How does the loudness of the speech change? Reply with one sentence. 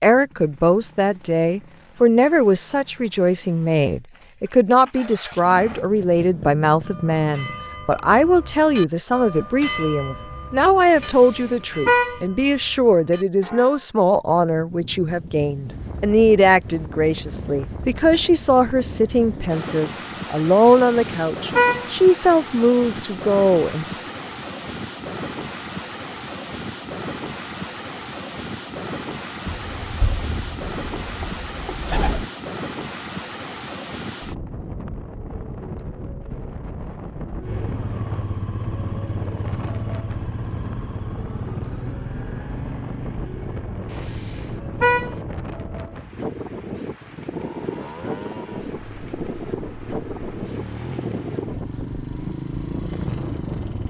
The volume of the speech stays about the same.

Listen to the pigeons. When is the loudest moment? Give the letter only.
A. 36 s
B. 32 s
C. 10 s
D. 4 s
B.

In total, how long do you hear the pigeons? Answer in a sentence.
The pigeons can be heard for 3 seconds in total.